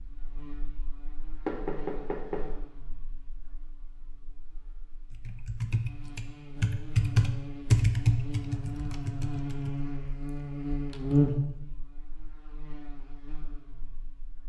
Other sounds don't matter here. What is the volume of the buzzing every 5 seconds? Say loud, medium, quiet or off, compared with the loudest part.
quiet, medium, loud.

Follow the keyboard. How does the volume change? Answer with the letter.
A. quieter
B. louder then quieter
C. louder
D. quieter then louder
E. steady
B.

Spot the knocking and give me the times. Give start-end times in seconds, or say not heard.
1.4-2.5.